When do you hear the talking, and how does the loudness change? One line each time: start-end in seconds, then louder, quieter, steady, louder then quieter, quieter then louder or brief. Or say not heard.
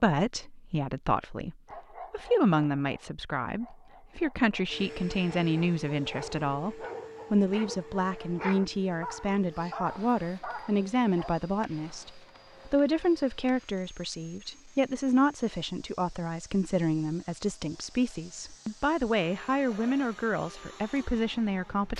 0.0-21.9 steady.